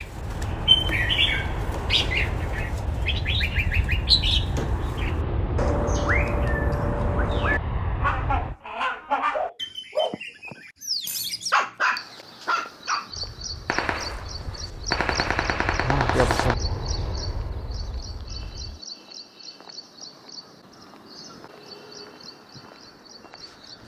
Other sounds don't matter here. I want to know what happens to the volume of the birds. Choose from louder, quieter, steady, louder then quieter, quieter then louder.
quieter.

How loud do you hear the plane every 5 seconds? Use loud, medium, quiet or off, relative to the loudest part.
loud, loud, quiet, medium, off.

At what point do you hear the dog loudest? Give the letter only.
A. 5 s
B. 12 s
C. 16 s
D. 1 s
B.